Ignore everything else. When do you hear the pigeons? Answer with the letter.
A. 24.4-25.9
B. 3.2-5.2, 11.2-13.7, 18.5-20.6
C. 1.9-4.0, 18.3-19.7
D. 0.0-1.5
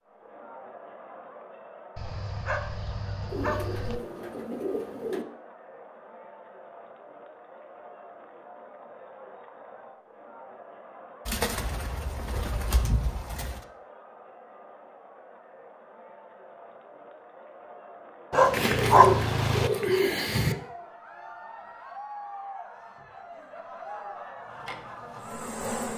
B.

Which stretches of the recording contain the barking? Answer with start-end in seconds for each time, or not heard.
1.9-4.0, 18.3-19.7.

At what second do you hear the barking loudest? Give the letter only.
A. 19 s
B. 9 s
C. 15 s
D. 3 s
A.